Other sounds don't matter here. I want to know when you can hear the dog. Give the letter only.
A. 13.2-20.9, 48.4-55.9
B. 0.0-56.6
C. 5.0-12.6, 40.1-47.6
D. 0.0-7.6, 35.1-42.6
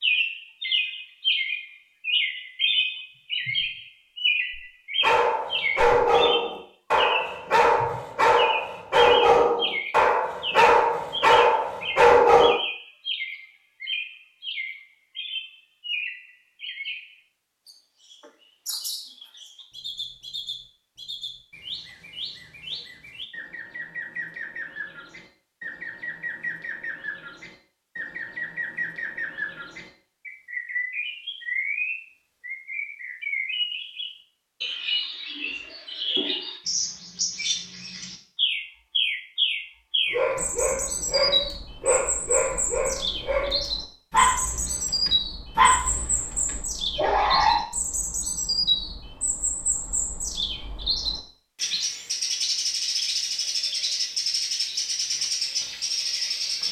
C.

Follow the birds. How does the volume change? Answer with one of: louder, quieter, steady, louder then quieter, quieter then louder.
quieter then louder.